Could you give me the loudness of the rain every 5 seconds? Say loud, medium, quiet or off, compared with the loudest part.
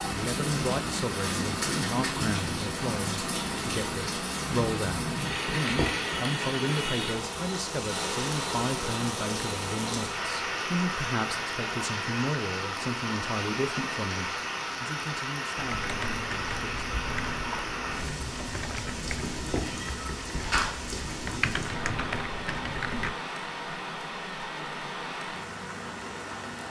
loud, loud, loud, loud, medium, medium.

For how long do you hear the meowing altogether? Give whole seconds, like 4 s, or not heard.
3 s.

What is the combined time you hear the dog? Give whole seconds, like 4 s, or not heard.
not heard.